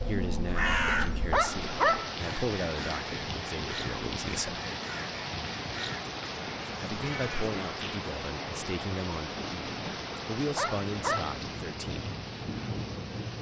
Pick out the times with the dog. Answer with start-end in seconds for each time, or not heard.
0.8-2.1, 10.3-11.3.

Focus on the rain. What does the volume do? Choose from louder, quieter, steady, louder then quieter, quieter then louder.
steady.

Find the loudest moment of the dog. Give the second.
2 s.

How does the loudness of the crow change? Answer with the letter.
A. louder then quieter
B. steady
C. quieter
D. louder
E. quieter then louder
C.